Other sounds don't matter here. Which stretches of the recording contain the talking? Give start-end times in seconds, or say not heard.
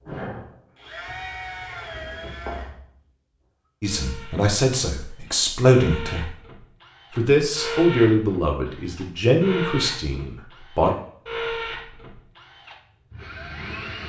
3.8-6.3, 7.2-10.9.